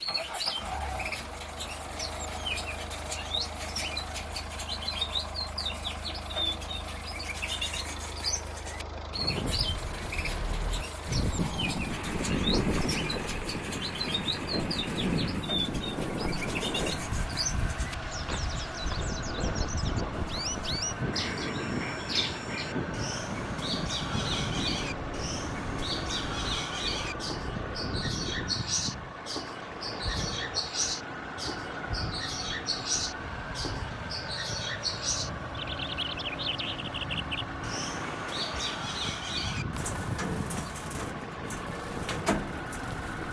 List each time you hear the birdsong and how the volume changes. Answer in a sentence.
The birdsong can be heard from 0.0 to 43.2 s, at a steady volume.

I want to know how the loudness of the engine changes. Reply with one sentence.
The volume of the engine stays about the same.